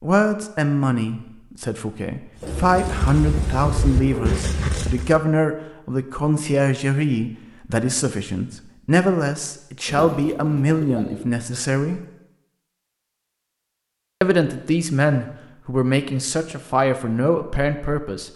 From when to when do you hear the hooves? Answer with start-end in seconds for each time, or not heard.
2.4-5.2.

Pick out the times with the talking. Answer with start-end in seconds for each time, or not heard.
0.0-12.0, 14.2-18.3.